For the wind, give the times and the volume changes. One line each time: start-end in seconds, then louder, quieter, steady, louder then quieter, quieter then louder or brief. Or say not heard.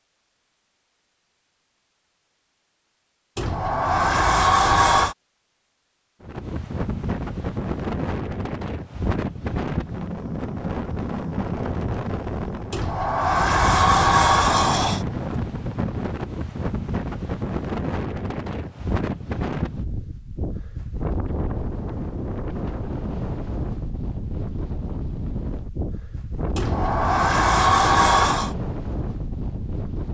6.2-30.1 steady.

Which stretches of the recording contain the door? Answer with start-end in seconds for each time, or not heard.
3.4-5.2, 12.7-15.1, 26.6-28.6.